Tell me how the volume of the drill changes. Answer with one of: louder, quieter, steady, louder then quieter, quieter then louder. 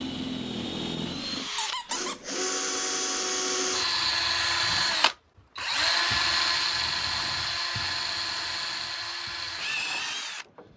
louder then quieter.